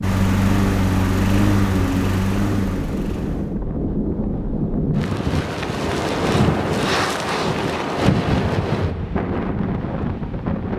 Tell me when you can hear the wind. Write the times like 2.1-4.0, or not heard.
0.0-10.7.